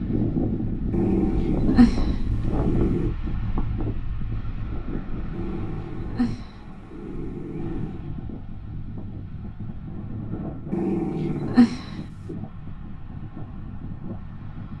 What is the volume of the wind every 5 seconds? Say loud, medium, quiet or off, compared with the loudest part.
loud, medium, medium.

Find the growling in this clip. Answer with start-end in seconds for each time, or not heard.
0.9-3.1, 5.3-8.1, 10.7-12.3.